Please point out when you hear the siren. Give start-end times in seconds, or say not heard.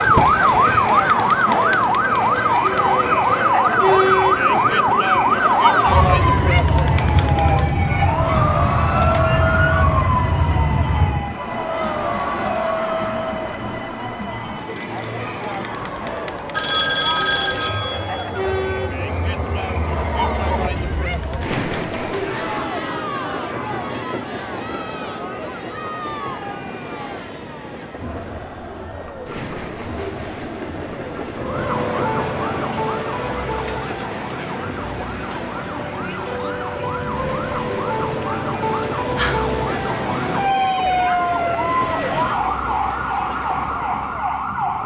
0.0-11.3, 31.4-44.8.